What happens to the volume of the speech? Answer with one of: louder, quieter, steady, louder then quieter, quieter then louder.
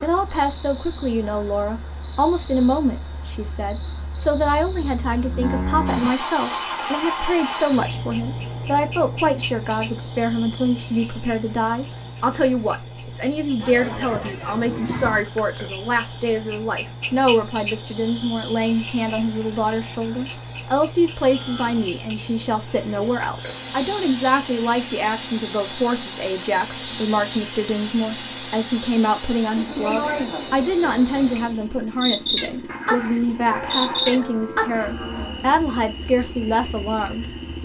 steady.